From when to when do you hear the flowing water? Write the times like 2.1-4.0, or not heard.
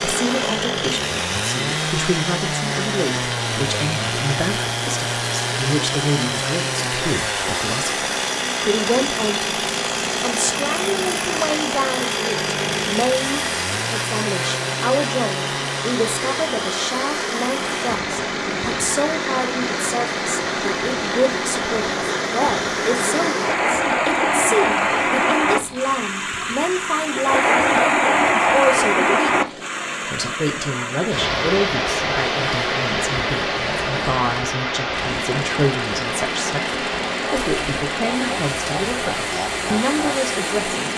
0.0-40.9.